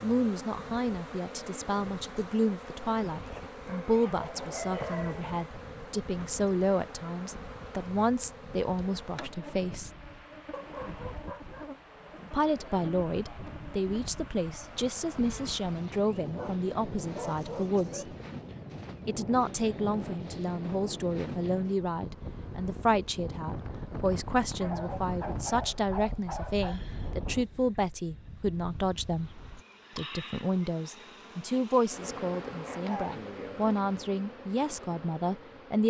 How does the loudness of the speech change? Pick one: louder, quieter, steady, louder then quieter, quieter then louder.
steady.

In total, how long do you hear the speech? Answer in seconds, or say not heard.
32 s.